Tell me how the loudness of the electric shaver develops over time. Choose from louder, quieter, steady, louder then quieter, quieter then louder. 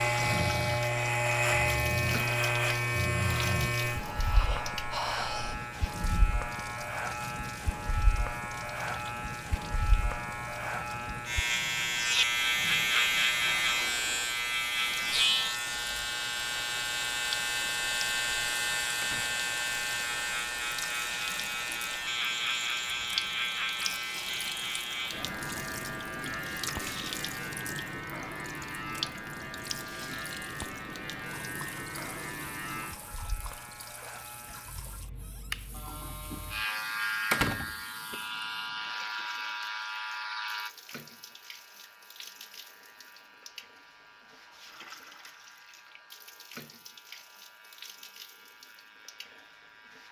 quieter.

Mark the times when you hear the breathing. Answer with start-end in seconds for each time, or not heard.
0.0-5.5.